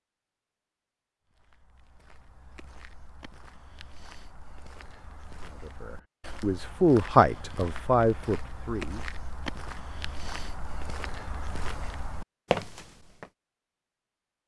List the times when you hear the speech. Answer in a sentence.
The speech can be heard from 5.4 to 9.1 s.